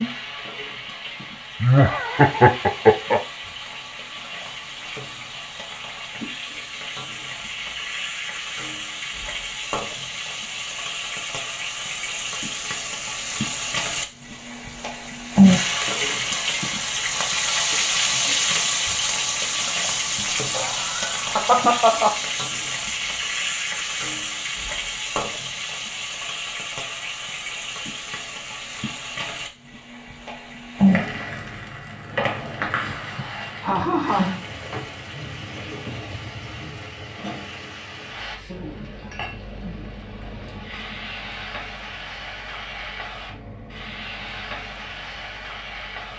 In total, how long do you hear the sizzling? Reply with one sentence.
The sizzling can be heard for 46 seconds in total.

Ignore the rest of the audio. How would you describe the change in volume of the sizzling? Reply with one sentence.
The volume of the sizzling goes up, then down.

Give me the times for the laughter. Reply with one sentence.
You can hear the laughter from 1.6 to 3.2 s, from 20.1 to 22.1 s and from 32.7 to 34.3 s.